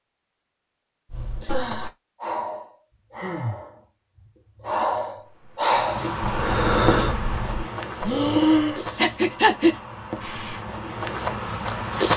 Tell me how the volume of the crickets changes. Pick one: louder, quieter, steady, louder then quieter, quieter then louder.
quieter then louder.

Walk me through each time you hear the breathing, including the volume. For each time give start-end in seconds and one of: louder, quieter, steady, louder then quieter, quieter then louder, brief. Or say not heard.
1.1-10.6 louder.